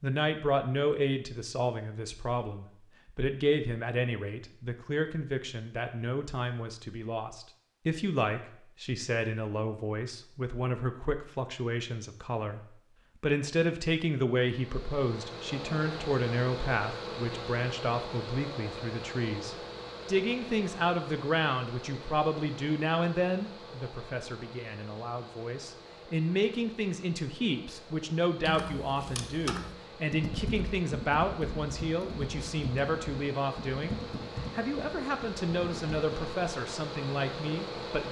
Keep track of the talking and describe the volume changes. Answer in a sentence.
The volume of the talking stays about the same.